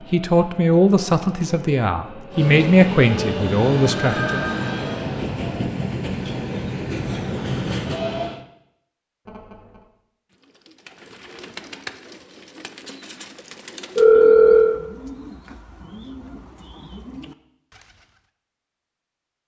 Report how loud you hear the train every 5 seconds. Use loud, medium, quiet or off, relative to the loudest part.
loud, loud, off, off.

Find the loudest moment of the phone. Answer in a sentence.
The loudest moment of the phone is at 14 seconds.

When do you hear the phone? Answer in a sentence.
You can hear the phone from 4.0 to 5.0 s, from 9.2 to 9.8 s and from 13.9 to 14.8 s.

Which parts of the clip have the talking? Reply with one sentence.
The talking can be heard from 0.1 to 4.5 s.